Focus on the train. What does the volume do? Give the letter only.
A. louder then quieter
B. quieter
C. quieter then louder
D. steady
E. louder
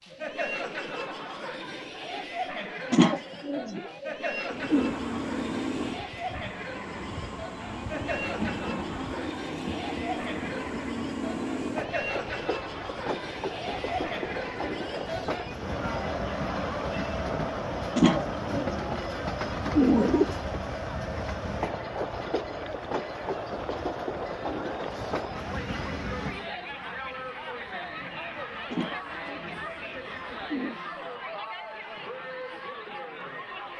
B.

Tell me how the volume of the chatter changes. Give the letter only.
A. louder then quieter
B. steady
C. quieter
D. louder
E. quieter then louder
B.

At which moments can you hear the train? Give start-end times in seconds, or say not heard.
4.5-30.6.